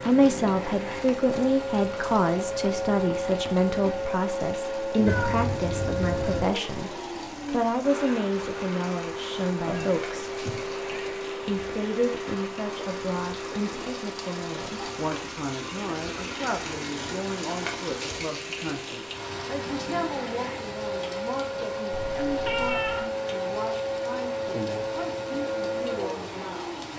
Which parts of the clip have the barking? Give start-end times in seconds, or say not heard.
not heard.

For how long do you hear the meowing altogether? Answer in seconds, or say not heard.
4 s.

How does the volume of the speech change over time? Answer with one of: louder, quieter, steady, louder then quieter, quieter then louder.
quieter.